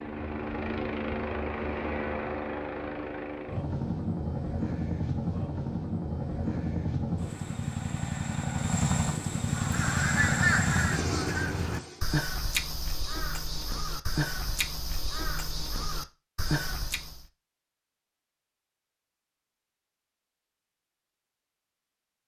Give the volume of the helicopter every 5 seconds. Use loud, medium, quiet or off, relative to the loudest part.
loud, loud, loud, off, off.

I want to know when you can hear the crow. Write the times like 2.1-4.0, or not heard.
9.4-17.2.